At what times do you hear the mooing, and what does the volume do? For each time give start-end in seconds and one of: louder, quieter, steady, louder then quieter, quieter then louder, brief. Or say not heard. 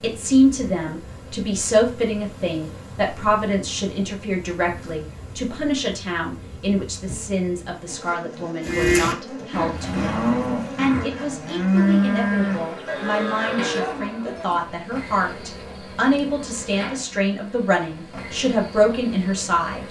8.6-14.7 louder then quieter.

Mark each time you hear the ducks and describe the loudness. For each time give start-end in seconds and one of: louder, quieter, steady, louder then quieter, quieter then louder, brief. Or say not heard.
not heard.